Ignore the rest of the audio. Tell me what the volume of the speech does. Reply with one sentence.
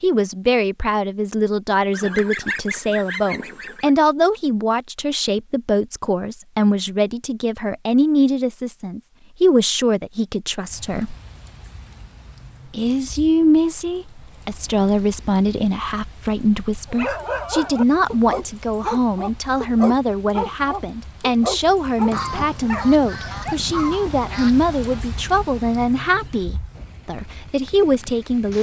The loudness of the speech stays about the same.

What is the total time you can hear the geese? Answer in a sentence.
You can hear the geese for 5 seconds altogether.